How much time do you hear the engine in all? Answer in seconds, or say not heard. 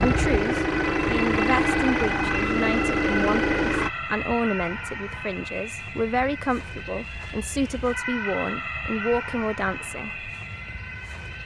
4 s.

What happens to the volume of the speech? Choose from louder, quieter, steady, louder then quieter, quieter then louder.
steady.